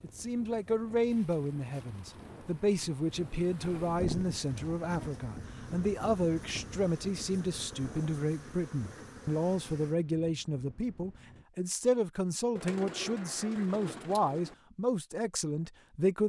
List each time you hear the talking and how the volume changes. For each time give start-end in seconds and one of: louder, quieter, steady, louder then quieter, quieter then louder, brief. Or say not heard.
0.0-16.2 steady.